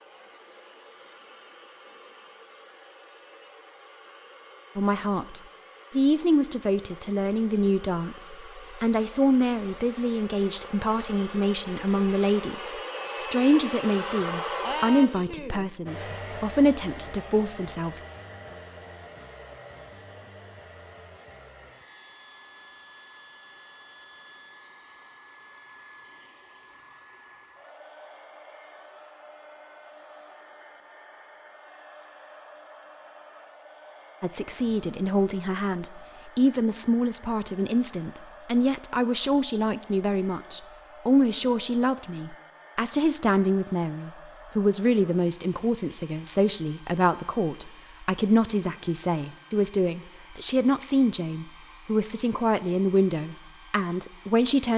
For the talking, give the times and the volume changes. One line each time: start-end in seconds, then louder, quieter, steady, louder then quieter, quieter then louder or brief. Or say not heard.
4.8-18.1 steady
34.2-54.7 steady.